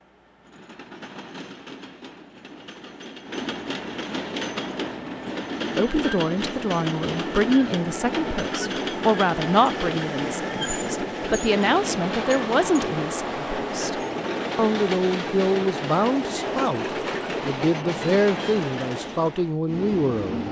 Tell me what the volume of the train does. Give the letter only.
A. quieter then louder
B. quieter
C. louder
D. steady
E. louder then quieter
C.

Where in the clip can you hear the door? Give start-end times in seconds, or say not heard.
not heard.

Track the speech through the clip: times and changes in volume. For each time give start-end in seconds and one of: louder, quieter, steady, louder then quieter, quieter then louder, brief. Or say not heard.
5.8-20.4 steady.